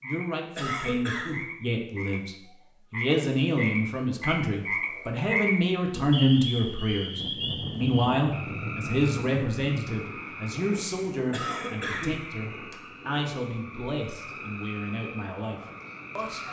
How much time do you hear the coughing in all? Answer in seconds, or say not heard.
2 s.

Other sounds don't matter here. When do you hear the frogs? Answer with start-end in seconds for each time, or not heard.
0.0-2.2, 2.9-16.4.